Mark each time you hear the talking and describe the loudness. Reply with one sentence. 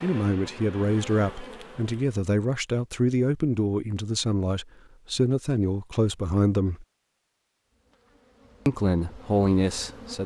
You can hear the talking from 0.0 to 6.8 s, at a steady volume; and briefly from 8.7 to 10.2 s.